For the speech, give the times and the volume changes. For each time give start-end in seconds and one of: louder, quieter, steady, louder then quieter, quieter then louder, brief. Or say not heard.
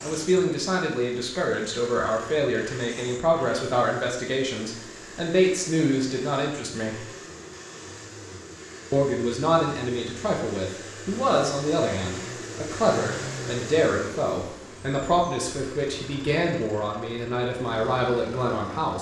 0.0-7.1 steady
8.9-18.9 steady.